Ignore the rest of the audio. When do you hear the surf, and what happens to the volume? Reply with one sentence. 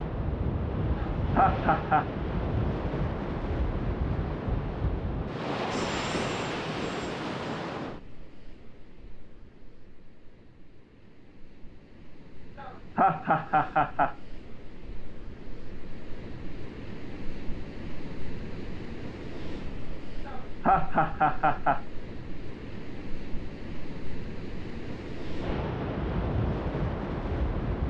The surf can be heard from 0.0 to 27.8 s, getting quieter then louder.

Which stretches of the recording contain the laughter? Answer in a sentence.
You can hear the laughter from 0.9 to 2.0 s, from 12.6 to 14.2 s and from 20.2 to 21.8 s.